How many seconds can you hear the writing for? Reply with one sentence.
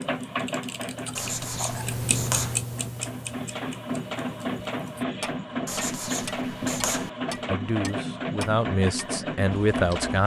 You can hear the writing for 3 seconds altogether.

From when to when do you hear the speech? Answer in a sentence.
You can hear the speech from 7.5 to 10.2 s.